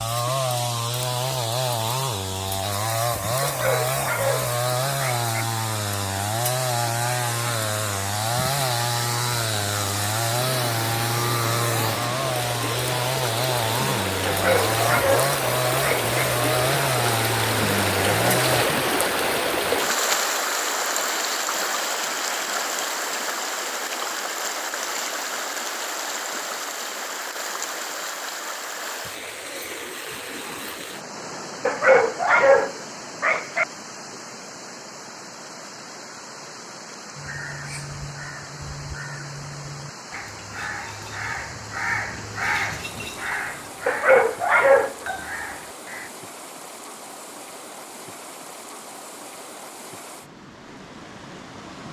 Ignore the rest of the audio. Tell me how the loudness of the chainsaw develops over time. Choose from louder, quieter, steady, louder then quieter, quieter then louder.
steady.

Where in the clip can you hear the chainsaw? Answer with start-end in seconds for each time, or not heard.
0.0-18.6.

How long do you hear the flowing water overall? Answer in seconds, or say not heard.
52 s.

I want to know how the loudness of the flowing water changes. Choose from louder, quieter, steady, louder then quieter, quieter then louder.
louder then quieter.